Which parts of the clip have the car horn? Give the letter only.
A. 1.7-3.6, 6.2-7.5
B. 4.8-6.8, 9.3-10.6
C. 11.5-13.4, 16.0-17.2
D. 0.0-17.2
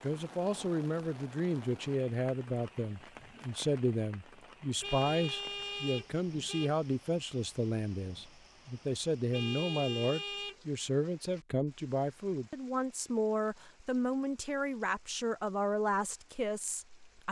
B.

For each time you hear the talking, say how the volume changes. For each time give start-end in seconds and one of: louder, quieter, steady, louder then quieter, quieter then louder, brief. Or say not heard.
0.0-17.2 steady.